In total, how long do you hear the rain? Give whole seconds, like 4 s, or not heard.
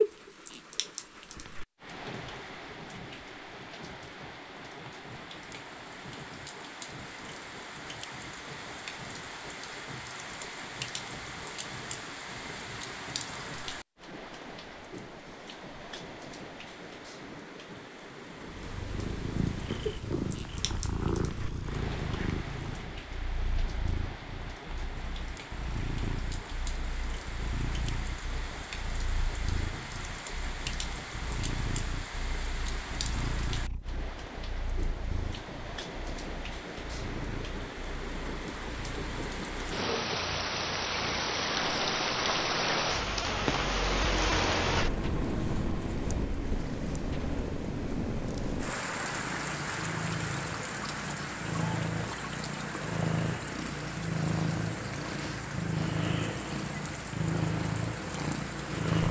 59 s.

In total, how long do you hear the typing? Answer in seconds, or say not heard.
not heard.